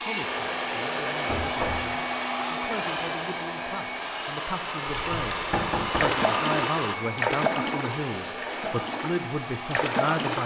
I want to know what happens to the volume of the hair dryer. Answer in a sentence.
The volume of the hair dryer goes down.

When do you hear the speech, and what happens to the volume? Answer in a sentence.
You can hear the speech from 0.0 to 10.4 s, getting louder.